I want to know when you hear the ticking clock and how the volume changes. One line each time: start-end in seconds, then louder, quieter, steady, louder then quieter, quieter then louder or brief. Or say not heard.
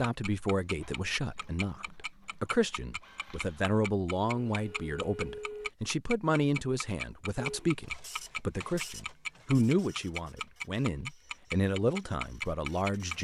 0.0-13.1 louder.